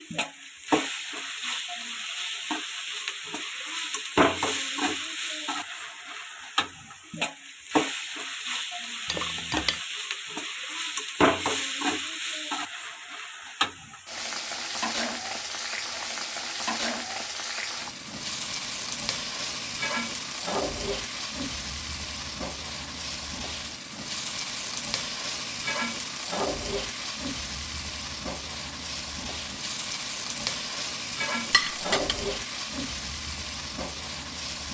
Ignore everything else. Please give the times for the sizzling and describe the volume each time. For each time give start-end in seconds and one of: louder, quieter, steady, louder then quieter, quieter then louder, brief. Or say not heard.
0.0-34.7 steady.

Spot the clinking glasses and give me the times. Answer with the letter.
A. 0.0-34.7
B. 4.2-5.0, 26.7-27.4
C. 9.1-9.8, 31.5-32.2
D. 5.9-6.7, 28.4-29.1
C.